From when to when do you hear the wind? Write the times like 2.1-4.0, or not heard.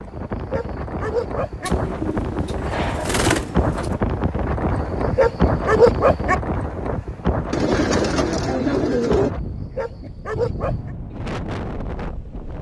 0.0-12.5.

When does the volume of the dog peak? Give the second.
6 s.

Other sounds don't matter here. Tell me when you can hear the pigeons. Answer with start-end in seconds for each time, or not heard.
1.6-4.0, 7.5-9.3.